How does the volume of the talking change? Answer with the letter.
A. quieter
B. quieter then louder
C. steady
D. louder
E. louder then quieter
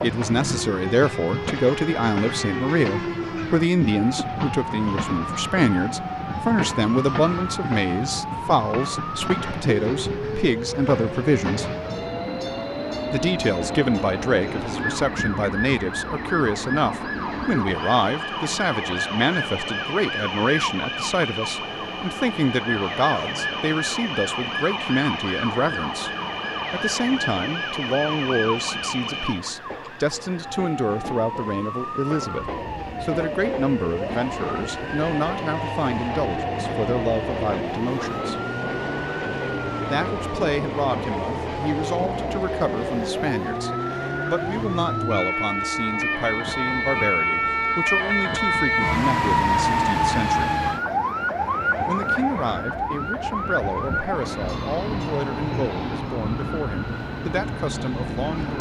A.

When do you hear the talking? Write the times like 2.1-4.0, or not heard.
0.0-11.7, 13.1-26.1, 26.7-38.4, 39.9-50.5, 51.9-58.5.